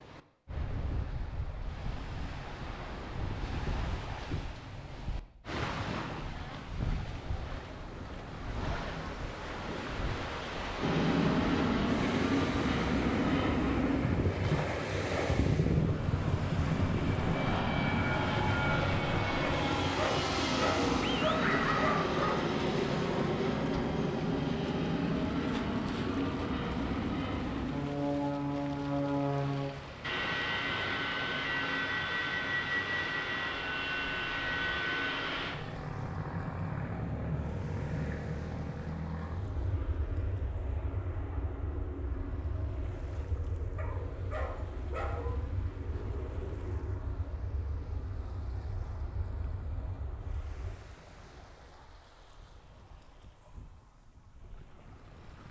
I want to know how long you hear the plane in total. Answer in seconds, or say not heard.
40 s.